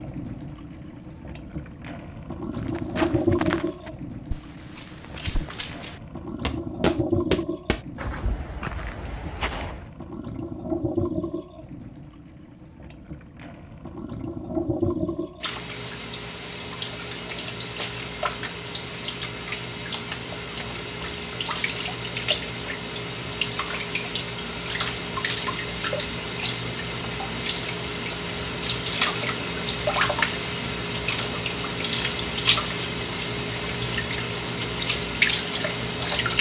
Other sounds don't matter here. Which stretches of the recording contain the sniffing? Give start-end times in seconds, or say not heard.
not heard.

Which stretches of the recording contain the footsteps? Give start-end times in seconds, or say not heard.
2.5-9.8.